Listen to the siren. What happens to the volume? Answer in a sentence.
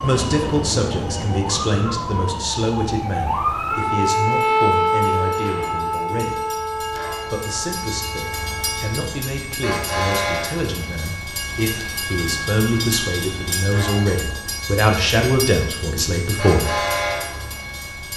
The volume of the siren goes up, then down.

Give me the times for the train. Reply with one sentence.
You can hear the train from 0.0 to 18.1 s.